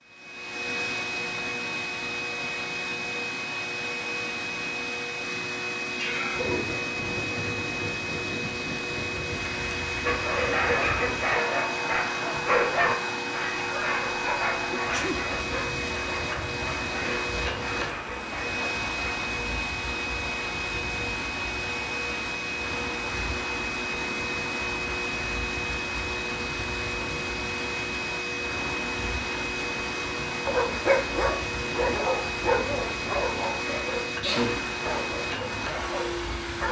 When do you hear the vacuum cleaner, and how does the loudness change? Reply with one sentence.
You can hear the vacuum cleaner from 0.0 to 36.6 s, at a steady volume.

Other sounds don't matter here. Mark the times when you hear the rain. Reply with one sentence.
You can hear the rain from 6.3 to 36.6 s.